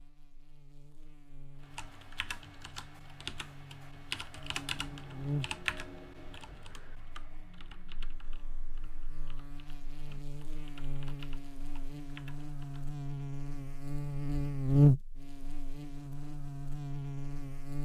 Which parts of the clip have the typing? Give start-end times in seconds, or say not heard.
1.6-12.8.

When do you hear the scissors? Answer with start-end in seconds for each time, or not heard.
not heard.